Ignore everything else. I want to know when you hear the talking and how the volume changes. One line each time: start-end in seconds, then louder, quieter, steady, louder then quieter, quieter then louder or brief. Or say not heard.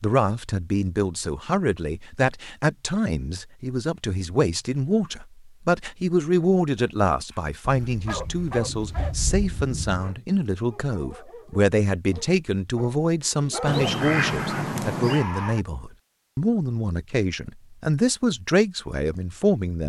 0.0-19.8 steady.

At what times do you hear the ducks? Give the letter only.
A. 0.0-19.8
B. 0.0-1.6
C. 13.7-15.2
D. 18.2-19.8
C.